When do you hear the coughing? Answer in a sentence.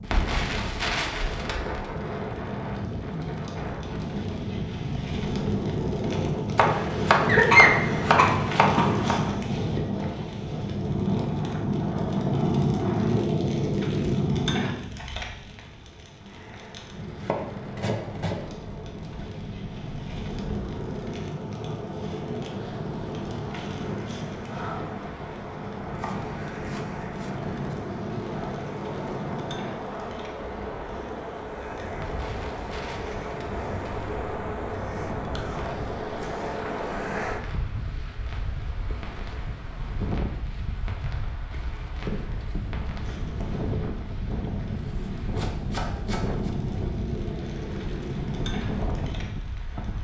The coughing can be heard from 7.2 to 9.2 s.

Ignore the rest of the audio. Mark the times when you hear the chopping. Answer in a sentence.
The chopping can be heard from 6.5 to 9.2 s, from 17.0 to 18.4 s, from 25.9 to 27.5 s and from 44.7 to 46.5 s.